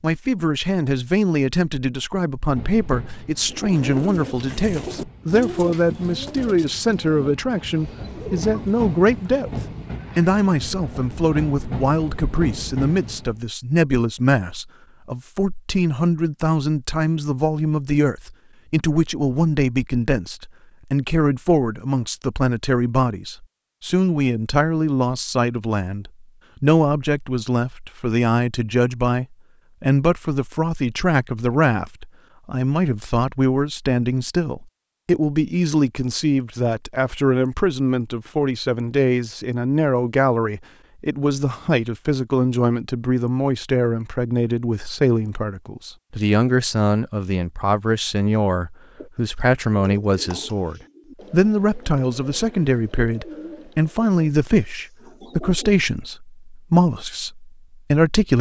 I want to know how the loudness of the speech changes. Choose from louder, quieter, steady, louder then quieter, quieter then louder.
steady.